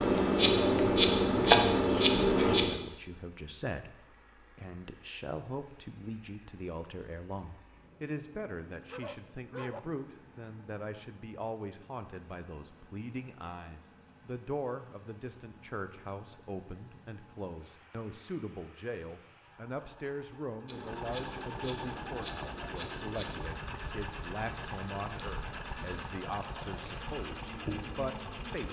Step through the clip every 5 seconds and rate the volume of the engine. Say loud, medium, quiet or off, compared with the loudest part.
quiet, quiet, quiet, quiet, loud, loud.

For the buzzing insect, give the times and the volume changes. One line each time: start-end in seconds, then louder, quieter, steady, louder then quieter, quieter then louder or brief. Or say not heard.
0.0-2.8 brief
20.7-28.6 quieter then louder.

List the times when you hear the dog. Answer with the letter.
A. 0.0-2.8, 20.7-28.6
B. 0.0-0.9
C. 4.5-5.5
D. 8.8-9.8
D.